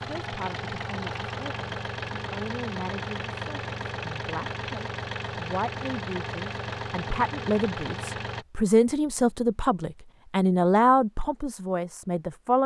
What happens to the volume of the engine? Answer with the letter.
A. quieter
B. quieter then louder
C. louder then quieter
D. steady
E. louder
D.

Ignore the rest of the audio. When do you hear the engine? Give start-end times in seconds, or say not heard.
0.0-8.4.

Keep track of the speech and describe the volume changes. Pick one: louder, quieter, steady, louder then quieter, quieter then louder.
louder.